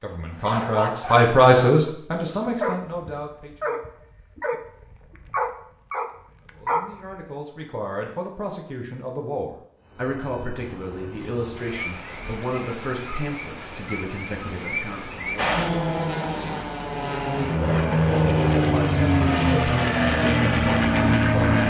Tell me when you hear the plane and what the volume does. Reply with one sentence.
You can hear the plane from 15.3 to 21.6 s, getting louder.